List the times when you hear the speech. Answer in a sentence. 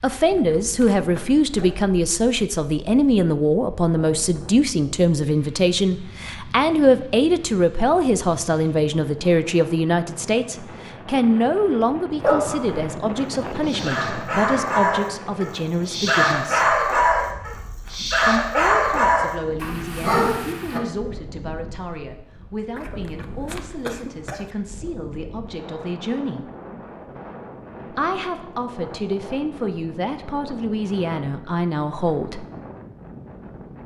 You can hear the speech from 0.0 to 16.8 s, from 18.2 to 26.5 s and from 27.9 to 32.5 s.